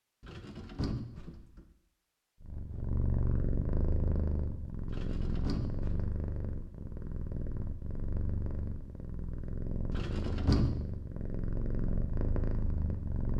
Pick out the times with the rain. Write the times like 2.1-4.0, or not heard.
not heard.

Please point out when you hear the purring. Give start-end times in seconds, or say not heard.
2.4-13.3.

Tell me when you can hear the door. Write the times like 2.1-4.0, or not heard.
0.2-1.6, 4.8-6.1, 9.9-10.8.